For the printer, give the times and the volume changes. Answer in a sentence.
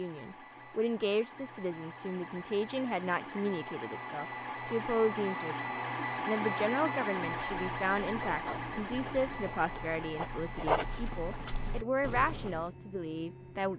The printer can be heard from 0.0 to 13.7 s, getting louder then quieter.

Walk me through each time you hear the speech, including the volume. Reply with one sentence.
The speech can be heard from 0.0 to 13.7 s, at a steady volume.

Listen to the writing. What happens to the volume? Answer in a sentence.
The loudness of the writing goes up, then down.